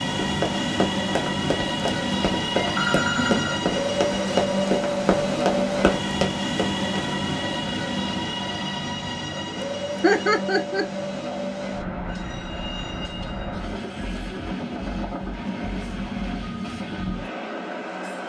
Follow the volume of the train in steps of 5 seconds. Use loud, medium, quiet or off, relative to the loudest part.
loud, loud, medium, medium.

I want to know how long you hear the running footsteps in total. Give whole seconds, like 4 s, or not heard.
7 s.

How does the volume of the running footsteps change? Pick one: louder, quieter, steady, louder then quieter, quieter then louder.
steady.